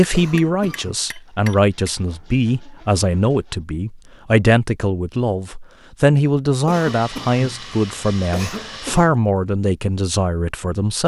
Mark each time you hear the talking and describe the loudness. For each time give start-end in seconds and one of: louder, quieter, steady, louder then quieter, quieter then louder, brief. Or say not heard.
0.0-11.0 steady.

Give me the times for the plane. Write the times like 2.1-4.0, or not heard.
not heard.